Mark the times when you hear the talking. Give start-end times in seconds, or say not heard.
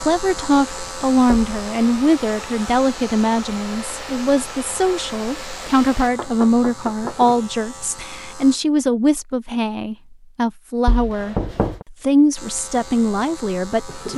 0.0-14.1.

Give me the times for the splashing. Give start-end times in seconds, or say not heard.
not heard.